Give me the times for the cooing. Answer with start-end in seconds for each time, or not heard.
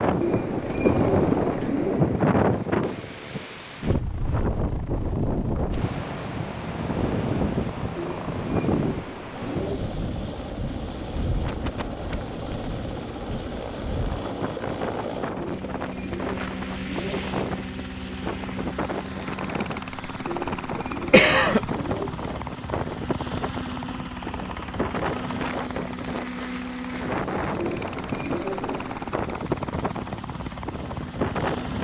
0.2-2.0, 8.0-9.9, 15.3-17.4, 20.2-22.3, 27.6-29.1.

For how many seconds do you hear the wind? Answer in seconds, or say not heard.
32 s.